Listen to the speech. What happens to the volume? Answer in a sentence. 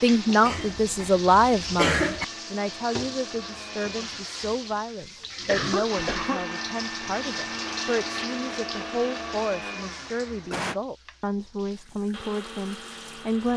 The volume of the speech goes down.